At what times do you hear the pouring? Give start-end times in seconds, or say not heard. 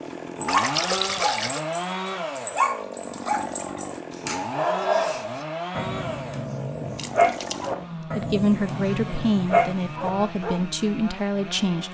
0.5-1.6, 7.0-7.7.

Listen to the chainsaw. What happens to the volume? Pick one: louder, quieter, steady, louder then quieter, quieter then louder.
quieter.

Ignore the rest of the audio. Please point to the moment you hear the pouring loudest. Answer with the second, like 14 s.
1 s.